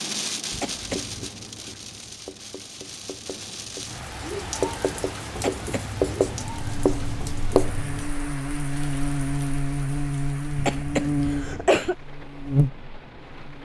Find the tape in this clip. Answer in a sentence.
You can't hear the tape here.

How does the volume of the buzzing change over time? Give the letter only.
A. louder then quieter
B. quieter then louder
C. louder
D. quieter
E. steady
C.